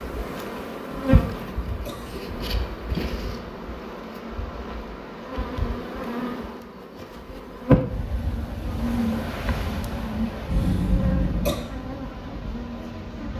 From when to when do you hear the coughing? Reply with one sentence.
You can hear the coughing from 0.9 to 2.2 s and from 10.5 to 11.6 s.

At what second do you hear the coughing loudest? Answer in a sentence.
The loudest moment of the coughing is at 11 seconds.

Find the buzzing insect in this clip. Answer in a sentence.
You can hear the buzzing insect from 0.0 to 13.3 s.